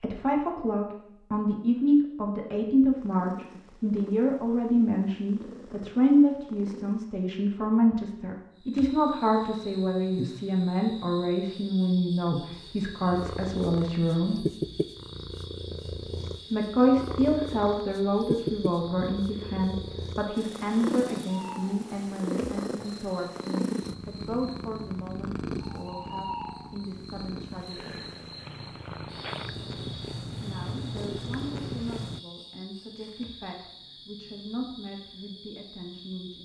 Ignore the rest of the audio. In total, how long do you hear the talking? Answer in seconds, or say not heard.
32 s.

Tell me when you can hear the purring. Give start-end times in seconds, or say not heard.
3.0-7.0, 12.5-32.2.